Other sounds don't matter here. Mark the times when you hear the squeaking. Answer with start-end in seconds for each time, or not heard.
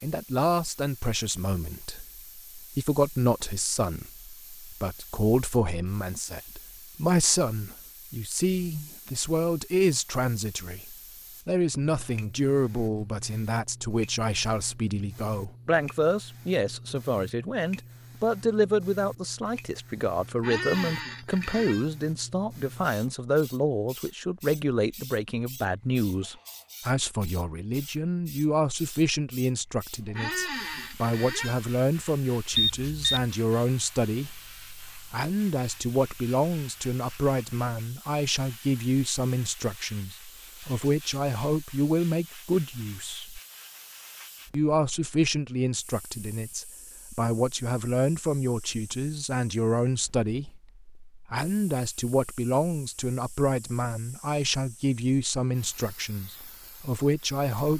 20.4-21.9, 30.1-31.6.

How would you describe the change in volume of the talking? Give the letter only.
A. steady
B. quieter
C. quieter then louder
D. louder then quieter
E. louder
A.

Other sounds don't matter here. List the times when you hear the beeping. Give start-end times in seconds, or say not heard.
32.5-33.2.